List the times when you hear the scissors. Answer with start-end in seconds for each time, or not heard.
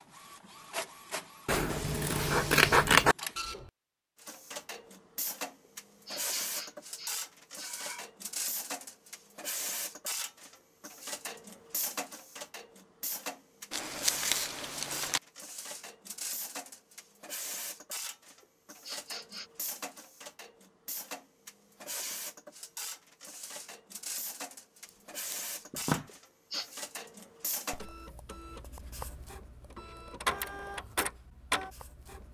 1.4-3.1, 13.7-15.2, 24.9-26.1.